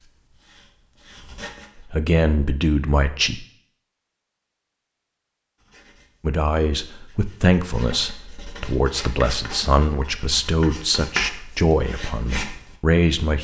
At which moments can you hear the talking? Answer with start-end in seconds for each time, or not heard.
1.8-3.5, 6.2-13.4.